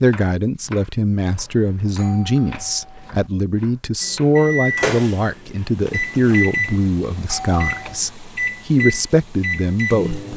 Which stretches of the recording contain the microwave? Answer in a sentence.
The microwave can be heard from 4.0 to 10.3 s.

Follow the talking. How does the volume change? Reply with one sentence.
The volume of the talking stays about the same.